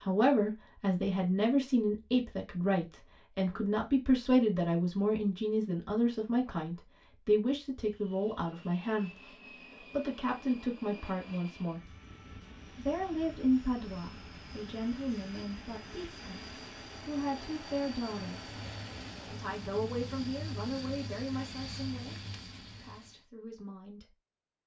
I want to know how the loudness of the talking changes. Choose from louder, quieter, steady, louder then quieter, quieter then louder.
quieter.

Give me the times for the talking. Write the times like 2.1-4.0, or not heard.
0.0-11.9, 12.8-18.5, 19.2-24.1.